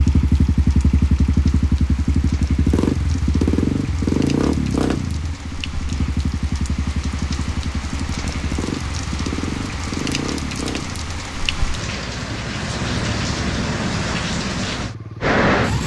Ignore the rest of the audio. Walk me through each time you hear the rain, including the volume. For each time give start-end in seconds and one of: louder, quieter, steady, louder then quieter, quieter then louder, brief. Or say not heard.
0.0-15.8 louder.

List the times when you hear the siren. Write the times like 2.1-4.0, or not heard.
not heard.